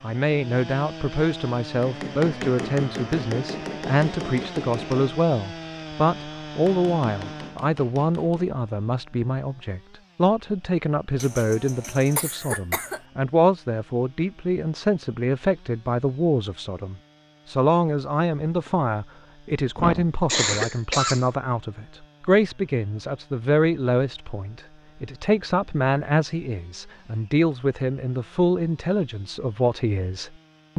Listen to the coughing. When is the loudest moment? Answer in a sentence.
The loudest moment of the coughing is at 20 seconds.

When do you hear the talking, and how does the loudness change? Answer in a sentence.
You can hear the talking from 0.0 to 30.7 s, at a steady volume.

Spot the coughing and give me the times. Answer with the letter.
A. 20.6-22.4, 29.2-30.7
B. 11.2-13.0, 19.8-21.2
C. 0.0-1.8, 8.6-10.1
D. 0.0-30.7
B.